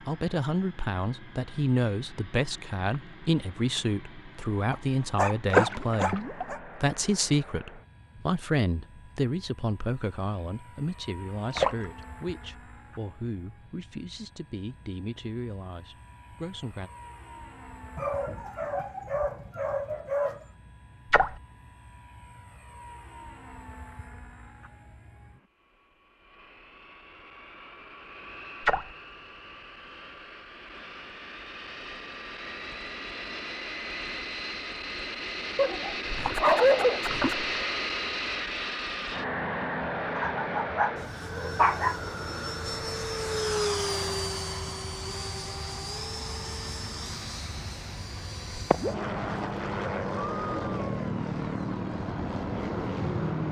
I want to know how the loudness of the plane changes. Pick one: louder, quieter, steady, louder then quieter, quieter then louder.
louder.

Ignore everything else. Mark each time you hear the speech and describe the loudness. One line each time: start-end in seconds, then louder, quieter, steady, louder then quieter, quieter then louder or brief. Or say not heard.
0.0-16.9 quieter.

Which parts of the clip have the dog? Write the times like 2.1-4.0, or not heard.
4.7-6.6, 17.9-20.4, 35.5-37.4, 40.1-42.0.